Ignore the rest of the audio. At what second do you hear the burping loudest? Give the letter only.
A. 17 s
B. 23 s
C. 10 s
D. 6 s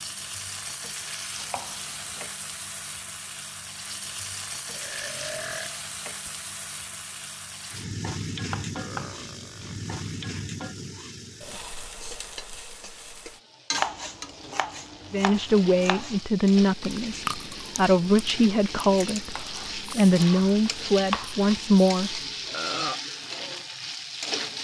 B.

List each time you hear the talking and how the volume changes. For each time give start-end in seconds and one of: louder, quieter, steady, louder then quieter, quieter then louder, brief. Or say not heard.
15.1-22.1 steady.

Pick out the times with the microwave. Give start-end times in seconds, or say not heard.
not heard.